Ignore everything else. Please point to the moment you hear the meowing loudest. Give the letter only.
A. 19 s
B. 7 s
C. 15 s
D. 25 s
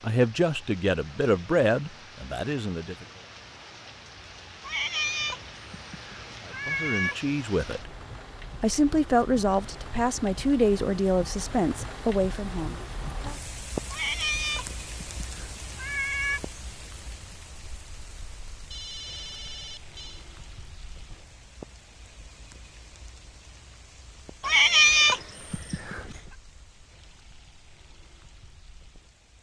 D.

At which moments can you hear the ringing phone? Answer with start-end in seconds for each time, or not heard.
18.7-20.2.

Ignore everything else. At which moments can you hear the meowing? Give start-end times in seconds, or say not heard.
4.6-7.2, 13.9-16.4, 24.4-26.2.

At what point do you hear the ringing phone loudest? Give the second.
19 s.